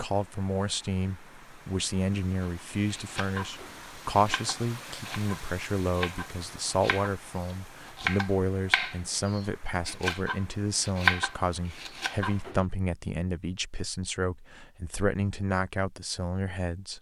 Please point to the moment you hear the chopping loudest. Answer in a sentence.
The volume of the chopping peaks at 11 seconds.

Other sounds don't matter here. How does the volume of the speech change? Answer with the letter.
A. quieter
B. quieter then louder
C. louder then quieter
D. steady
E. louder
D.